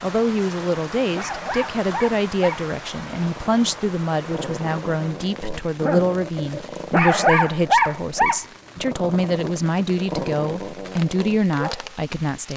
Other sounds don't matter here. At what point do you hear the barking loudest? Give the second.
8 s.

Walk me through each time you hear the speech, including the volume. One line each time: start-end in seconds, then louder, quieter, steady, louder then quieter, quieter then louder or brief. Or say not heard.
0.0-12.5 steady.